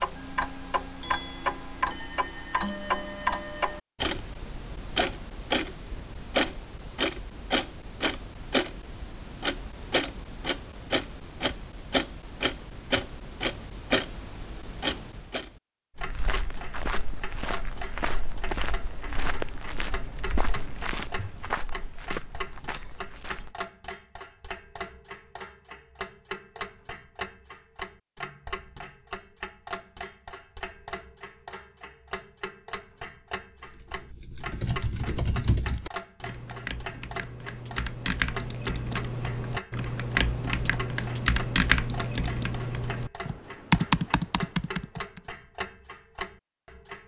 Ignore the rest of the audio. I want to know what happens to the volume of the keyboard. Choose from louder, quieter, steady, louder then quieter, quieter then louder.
louder.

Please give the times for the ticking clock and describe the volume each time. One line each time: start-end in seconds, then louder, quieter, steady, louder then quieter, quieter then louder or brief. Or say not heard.
0.0-47.0 quieter.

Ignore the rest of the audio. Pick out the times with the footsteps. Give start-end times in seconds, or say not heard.
15.9-23.6.